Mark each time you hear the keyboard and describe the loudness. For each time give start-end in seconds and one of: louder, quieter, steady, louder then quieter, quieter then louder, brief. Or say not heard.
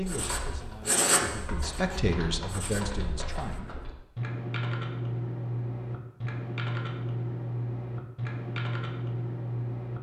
0.1-9.9 louder.